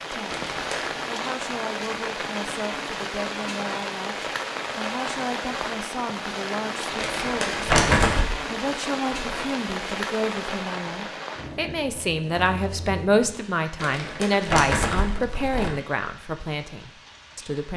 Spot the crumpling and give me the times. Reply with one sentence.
The crumpling can be heard from 0.2 to 1.0 s, from 7.0 to 8.3 s and from 13.8 to 15.7 s.